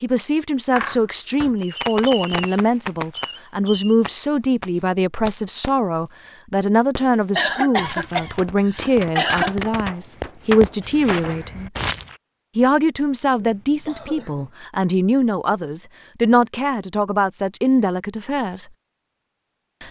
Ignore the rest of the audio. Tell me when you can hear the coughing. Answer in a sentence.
The coughing can be heard from 0.8 to 1.5 s, from 7.3 to 9.6 s and from 13.3 to 14.5 s.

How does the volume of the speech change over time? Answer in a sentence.
The loudness of the speech stays about the same.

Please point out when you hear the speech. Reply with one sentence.
You can hear the speech from 0.0 to 11.7 s and from 12.6 to 18.6 s.